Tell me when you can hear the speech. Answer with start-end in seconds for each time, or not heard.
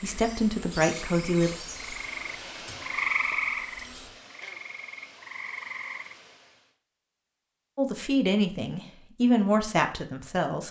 0.0-1.6, 7.8-10.6.